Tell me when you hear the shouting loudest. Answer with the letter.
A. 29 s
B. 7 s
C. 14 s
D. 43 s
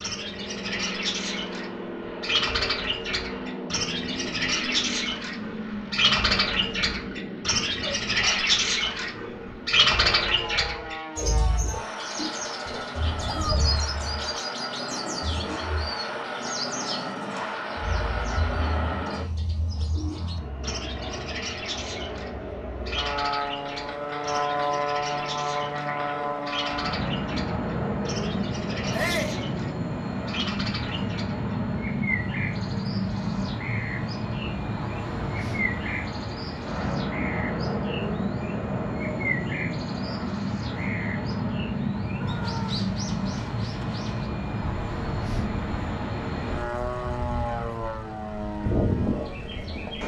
A.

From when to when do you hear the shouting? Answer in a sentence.
The shouting can be heard from 13.2 to 13.6 s, from 28.9 to 29.4 s and from 42.1 to 42.8 s.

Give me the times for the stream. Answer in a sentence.
You can't hear the stream here.